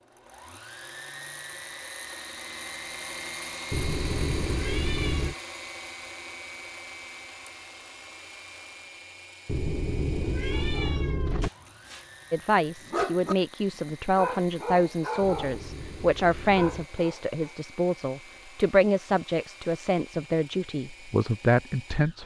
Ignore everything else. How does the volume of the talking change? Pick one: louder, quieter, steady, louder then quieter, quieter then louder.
steady.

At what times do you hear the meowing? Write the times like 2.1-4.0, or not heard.
3.7-5.3, 9.4-11.5, 15.2-16.9.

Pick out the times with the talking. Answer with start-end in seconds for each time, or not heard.
12.3-22.2.